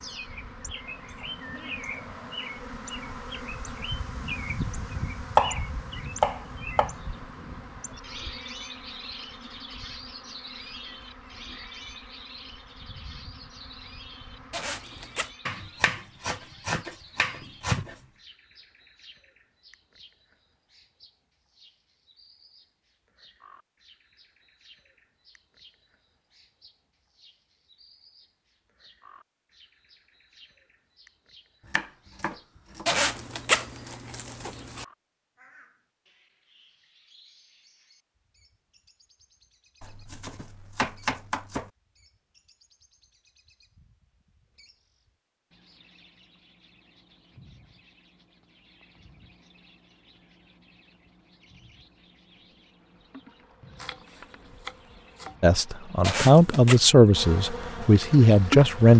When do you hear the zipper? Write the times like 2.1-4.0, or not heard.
14.5-15.3, 32.9-34.9, 56.0-56.8.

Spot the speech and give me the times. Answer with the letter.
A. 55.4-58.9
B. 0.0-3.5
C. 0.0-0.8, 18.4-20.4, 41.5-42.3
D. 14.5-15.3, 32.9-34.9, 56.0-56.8
A.